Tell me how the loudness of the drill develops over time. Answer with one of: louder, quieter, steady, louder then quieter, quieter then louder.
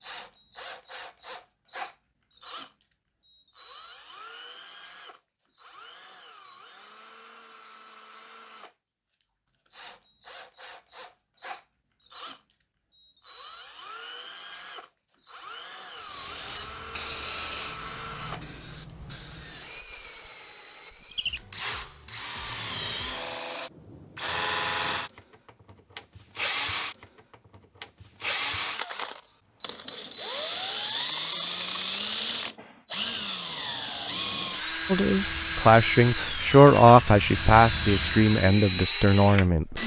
louder.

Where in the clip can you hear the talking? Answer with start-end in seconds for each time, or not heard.
34.9-39.8.